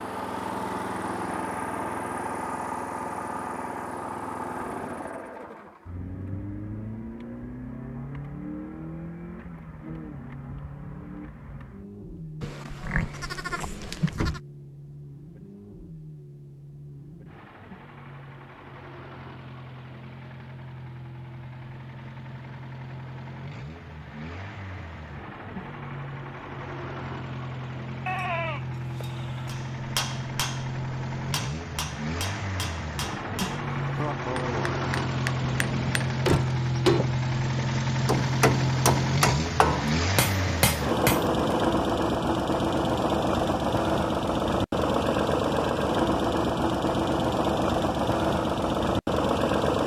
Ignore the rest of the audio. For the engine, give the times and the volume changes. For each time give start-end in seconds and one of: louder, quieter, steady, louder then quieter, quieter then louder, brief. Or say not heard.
0.0-49.8 quieter then louder.